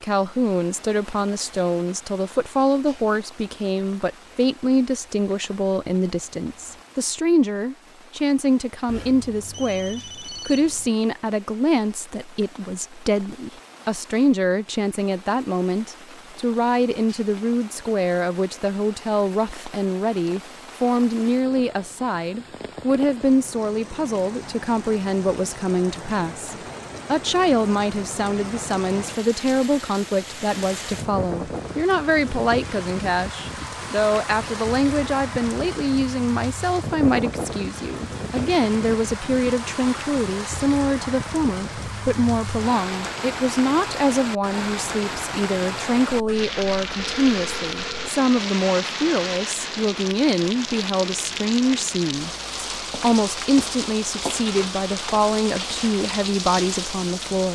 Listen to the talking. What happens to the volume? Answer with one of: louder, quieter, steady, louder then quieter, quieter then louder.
steady.